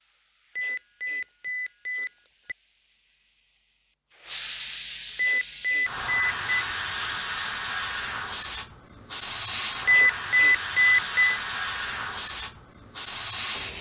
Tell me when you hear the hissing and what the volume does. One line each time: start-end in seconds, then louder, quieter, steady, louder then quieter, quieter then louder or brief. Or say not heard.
0.0-13.7 louder.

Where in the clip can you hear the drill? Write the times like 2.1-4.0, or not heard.
not heard.